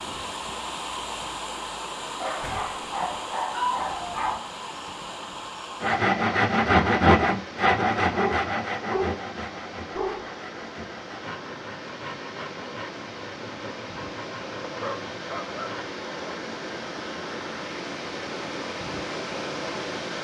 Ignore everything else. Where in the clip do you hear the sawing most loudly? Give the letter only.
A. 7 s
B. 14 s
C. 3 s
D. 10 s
A.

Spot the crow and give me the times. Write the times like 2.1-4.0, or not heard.
not heard.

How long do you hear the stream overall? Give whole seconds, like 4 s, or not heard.
20 s.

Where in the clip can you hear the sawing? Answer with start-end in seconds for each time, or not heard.
5.8-15.9.